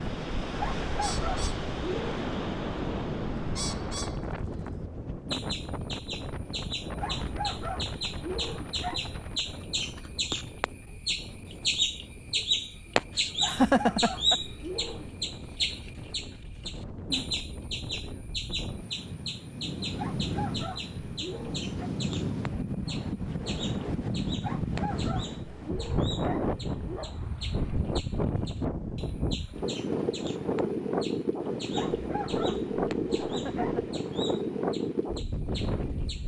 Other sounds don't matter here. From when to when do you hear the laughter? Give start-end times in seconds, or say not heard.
13.4-14.3, 33.1-33.7.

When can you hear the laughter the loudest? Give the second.
14 s.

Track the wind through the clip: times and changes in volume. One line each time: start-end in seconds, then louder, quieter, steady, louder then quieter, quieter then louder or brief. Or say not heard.
0.0-36.2 quieter then louder.